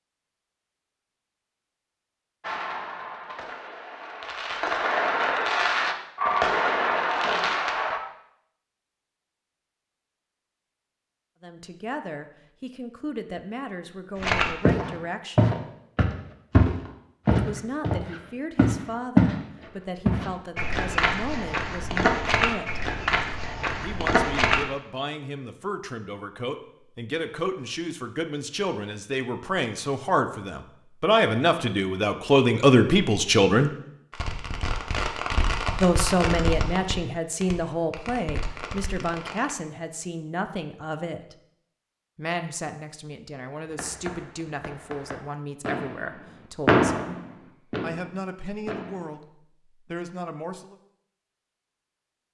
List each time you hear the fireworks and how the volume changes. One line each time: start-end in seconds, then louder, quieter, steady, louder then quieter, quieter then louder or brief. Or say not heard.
2.4-8.0 louder
34.1-39.5 quieter
43.6-49.2 louder then quieter.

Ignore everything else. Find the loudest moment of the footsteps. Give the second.
19 s.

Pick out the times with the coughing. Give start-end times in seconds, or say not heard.
not heard.